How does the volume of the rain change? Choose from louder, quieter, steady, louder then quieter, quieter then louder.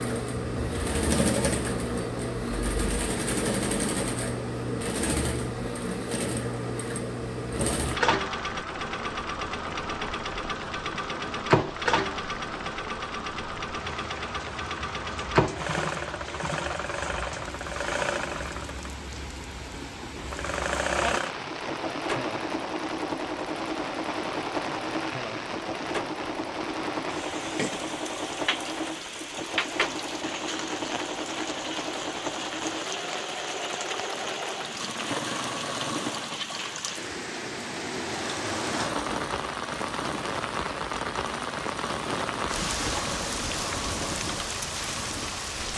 louder.